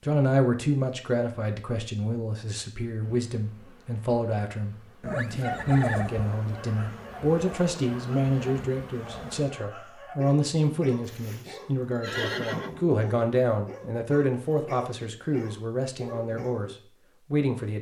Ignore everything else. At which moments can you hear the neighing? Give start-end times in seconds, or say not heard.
5.0-6.2, 11.1-12.8.